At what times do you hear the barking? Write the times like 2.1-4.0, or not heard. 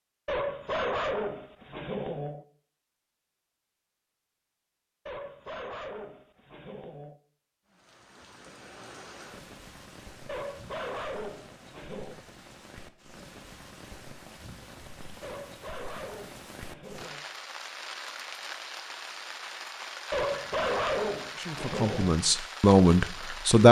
0.2-2.5, 5.0-7.2, 10.2-12.2, 15.2-17.2, 20.1-22.1.